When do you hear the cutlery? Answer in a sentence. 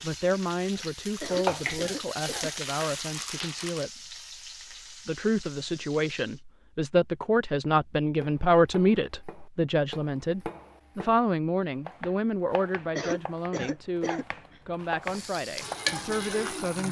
The cutlery can't be heard in this clip.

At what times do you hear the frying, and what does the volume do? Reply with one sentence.
You can hear the frying from 0.0 to 6.4 s, getting quieter; and briefly from 15.0 to 16.8 s.